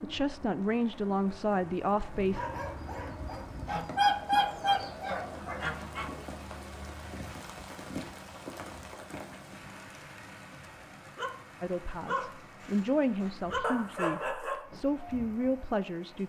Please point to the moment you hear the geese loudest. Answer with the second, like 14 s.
4 s.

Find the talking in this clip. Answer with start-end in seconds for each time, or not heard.
0.0-2.4, 11.6-16.2.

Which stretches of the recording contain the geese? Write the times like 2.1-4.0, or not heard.
3.6-6.2.